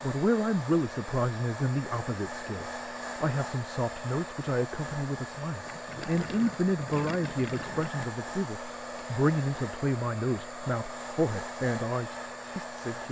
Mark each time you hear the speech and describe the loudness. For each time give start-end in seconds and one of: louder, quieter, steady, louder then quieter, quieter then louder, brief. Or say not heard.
0.0-13.0 steady.